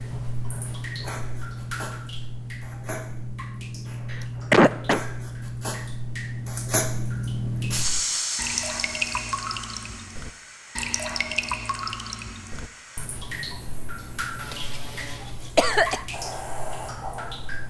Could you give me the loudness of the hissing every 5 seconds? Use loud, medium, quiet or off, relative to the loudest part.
medium, loud, quiet, medium.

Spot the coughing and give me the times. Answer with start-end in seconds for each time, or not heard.
4.1-5.0, 14.5-16.0.